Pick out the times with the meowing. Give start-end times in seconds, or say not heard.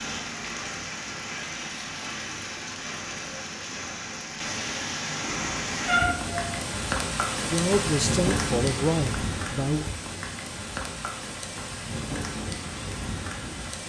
5.2-6.7.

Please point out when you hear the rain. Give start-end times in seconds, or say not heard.
0.0-13.8.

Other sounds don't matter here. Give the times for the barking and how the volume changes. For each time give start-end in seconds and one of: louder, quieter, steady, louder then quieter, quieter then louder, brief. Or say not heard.
not heard.